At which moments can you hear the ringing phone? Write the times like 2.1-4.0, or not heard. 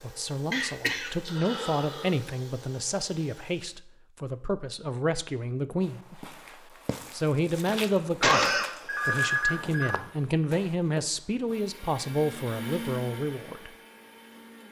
8.8-9.9.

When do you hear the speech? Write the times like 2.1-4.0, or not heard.
0.0-6.2, 7.1-13.7.